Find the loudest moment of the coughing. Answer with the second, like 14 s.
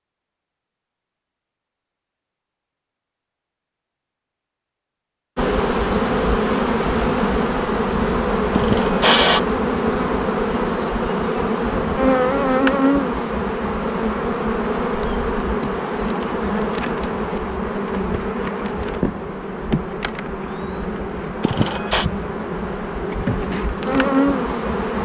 9 s.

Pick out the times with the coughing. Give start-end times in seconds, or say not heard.
8.5-9.4, 21.4-22.1.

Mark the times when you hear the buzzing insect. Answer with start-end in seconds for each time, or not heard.
5.3-25.0.